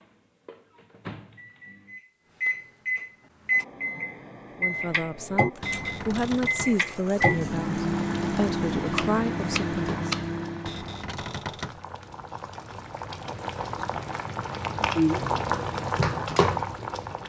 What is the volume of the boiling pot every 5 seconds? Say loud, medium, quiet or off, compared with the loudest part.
off, quiet, medium, loud.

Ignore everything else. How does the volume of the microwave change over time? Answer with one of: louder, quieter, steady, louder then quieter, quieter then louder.
louder.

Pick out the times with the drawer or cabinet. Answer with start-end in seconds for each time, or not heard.
5.6-6.8, 10.7-11.8.